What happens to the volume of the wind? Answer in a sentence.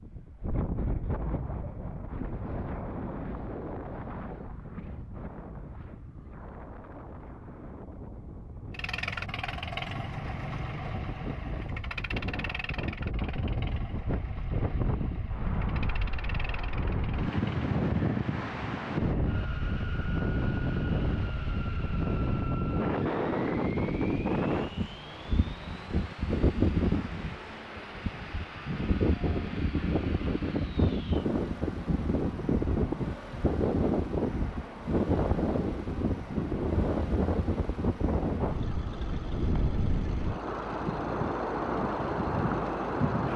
The loudness of the wind goes up.